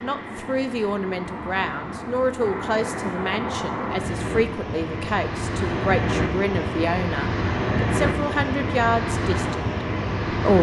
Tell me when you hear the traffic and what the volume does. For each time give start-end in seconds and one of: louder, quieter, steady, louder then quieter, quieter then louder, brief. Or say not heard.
0.0-10.5 louder.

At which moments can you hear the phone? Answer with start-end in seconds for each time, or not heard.
not heard.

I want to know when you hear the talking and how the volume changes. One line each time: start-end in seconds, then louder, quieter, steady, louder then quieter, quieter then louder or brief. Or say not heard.
0.0-10.5 steady.